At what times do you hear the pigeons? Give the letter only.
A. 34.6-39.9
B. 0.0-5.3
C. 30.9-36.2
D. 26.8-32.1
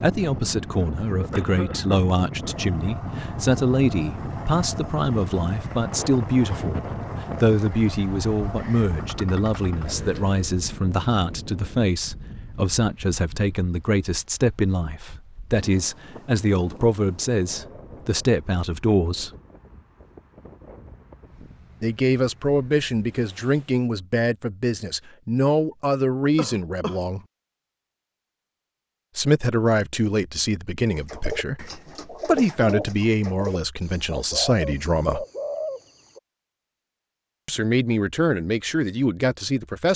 C.